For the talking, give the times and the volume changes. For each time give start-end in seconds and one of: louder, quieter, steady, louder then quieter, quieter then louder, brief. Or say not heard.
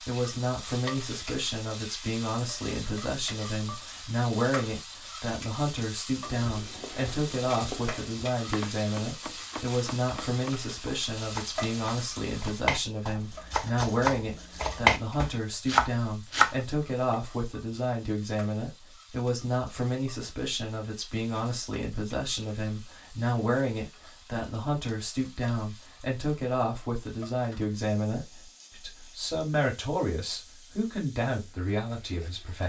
0.0-32.6 steady.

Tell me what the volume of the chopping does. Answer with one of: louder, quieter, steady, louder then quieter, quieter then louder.
louder.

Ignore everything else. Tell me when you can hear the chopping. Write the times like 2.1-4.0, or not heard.
6.2-16.6.